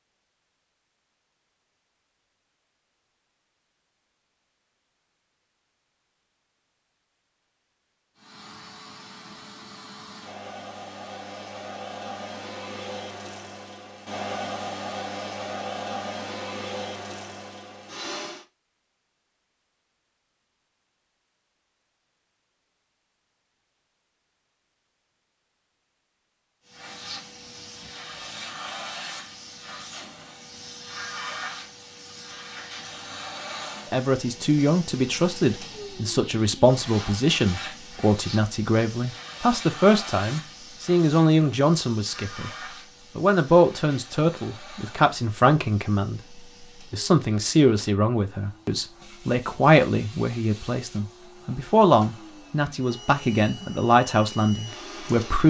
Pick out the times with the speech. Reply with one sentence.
The speech can be heard from 33.9 to 42.5 s and from 43.1 to 55.4 s.